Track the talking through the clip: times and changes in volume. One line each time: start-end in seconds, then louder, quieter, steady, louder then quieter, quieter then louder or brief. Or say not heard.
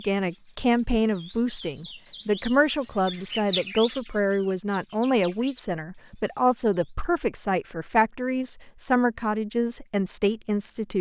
0.0-10.9 steady.